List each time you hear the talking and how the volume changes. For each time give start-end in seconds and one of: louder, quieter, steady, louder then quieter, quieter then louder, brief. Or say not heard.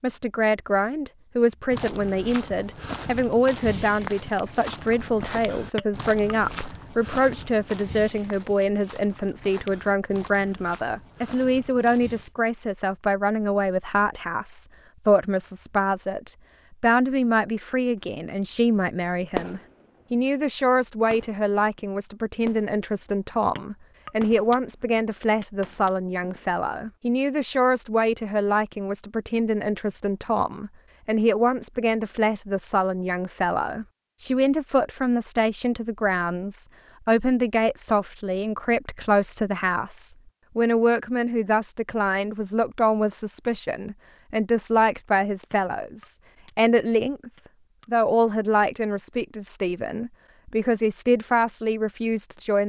0.0-52.6 steady.